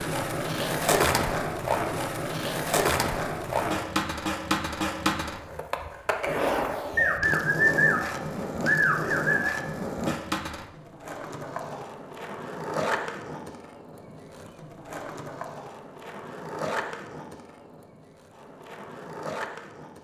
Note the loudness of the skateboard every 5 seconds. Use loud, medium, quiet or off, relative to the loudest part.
loud, loud, medium, medium.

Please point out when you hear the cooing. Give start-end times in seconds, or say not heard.
7.0-9.6.